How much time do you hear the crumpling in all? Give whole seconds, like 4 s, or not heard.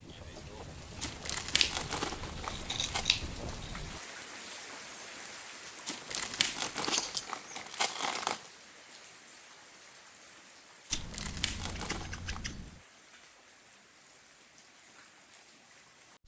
6 s.